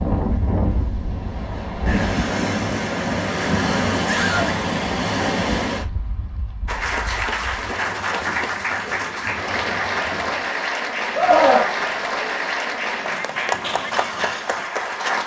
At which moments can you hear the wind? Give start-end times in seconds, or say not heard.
0.0-10.6.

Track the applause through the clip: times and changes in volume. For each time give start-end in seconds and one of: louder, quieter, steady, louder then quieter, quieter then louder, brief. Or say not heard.
6.7-15.2 steady.